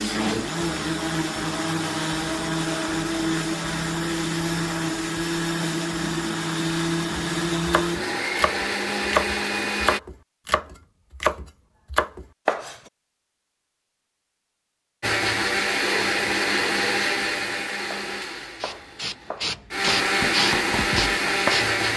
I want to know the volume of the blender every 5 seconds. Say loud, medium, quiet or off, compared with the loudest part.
loud, loud, off, loud, loud.